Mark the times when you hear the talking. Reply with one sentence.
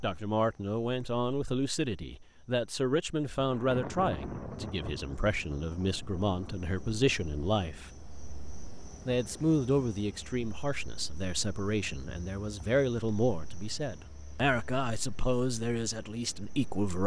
You can hear the talking from 0.0 to 7.9 s and from 9.1 to 17.0 s.